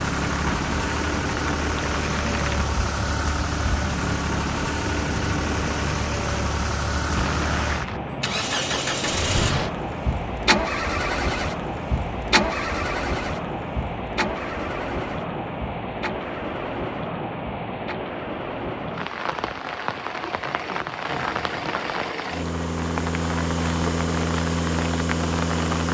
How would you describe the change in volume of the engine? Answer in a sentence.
The volume of the engine goes down, then up.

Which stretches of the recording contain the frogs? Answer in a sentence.
The frogs can't be heard in this clip.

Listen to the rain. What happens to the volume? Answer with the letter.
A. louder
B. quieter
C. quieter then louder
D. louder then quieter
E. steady
E.